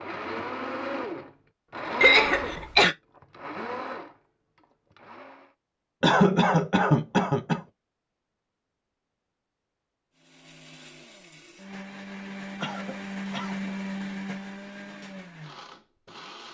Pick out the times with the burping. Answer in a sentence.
The burping can't be heard in this clip.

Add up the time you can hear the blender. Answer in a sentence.
You can hear the blender for 12 seconds altogether.